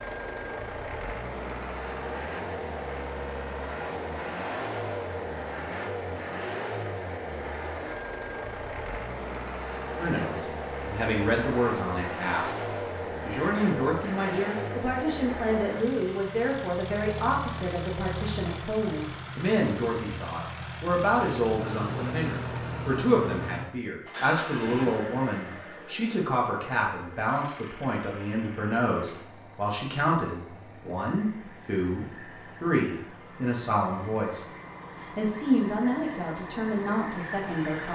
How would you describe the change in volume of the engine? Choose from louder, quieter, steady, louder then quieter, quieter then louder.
quieter.